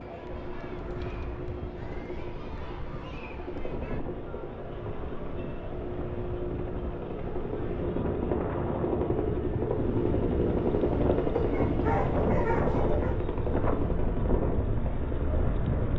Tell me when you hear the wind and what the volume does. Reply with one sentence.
The wind can be heard from 0.2 to 15.9 s, getting louder.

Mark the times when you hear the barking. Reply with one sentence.
You can hear the barking from 11.3 to 13.2 s.